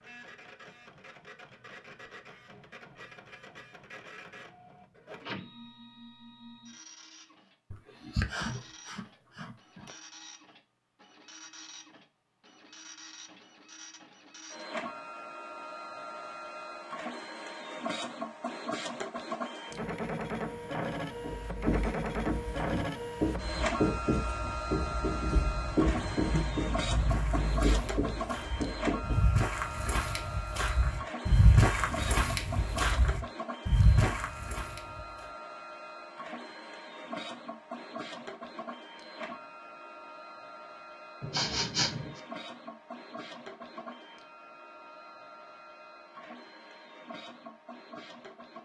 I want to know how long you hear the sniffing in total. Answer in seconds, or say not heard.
3 s.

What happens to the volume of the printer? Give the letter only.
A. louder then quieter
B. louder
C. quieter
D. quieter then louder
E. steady
A.